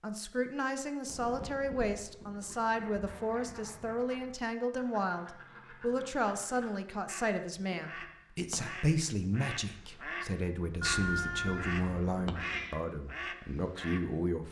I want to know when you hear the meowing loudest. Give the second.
11 s.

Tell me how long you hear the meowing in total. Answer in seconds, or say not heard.
2 s.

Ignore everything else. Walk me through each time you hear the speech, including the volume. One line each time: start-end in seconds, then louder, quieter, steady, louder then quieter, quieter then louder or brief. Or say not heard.
0.0-14.4 steady.